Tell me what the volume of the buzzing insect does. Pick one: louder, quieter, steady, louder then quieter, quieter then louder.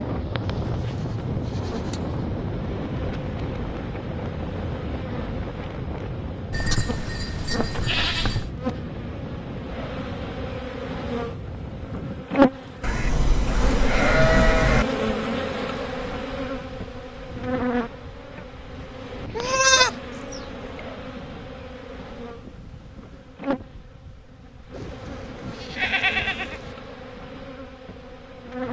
louder then quieter.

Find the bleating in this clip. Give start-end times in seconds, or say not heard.
1.6-2.0, 6.5-8.5, 12.8-14.8, 19.4-20.4, 24.7-26.7.